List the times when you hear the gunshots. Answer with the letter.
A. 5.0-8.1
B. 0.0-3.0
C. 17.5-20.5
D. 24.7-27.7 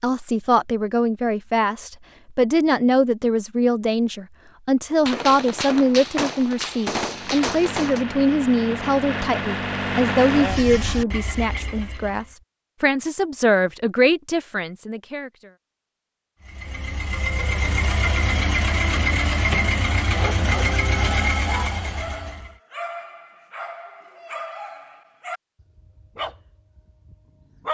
A.